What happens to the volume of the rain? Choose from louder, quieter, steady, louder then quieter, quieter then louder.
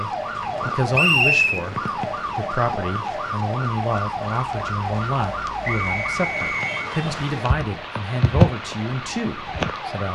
louder.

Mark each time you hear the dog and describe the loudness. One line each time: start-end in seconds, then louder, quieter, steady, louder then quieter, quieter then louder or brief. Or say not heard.
not heard.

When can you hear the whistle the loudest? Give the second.
1 s.